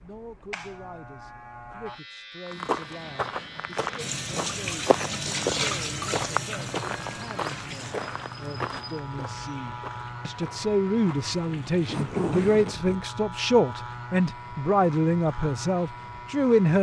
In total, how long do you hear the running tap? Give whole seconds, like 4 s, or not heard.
9 s.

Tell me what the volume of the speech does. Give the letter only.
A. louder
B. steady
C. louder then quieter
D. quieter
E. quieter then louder
A.